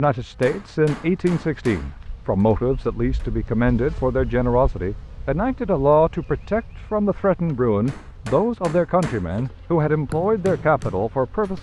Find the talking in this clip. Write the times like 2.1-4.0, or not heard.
0.0-11.5.